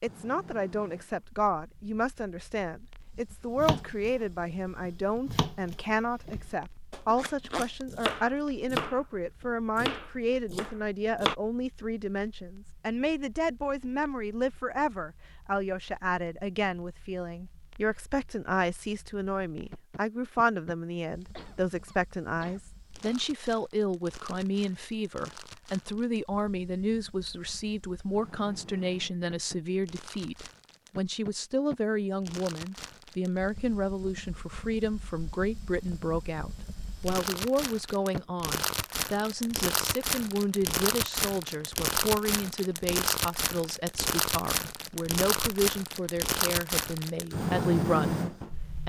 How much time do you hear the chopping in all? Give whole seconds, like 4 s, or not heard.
7 s.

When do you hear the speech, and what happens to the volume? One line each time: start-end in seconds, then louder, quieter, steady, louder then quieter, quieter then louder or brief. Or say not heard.
0.0-48.8 steady.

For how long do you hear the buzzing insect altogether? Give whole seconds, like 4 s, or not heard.
not heard.